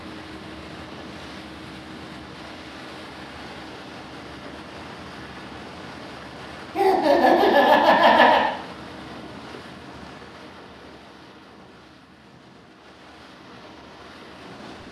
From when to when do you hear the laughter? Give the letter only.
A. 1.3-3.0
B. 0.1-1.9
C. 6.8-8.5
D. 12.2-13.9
C.